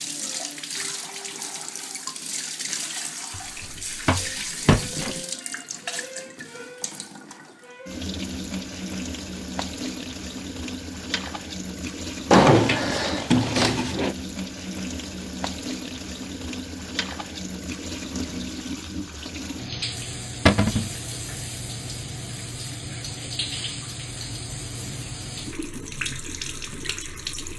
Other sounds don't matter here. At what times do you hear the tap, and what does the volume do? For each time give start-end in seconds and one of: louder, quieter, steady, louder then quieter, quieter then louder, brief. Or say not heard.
0.0-27.5 steady.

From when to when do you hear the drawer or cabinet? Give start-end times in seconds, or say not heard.
3.6-5.2, 12.3-14.2, 20.4-20.9.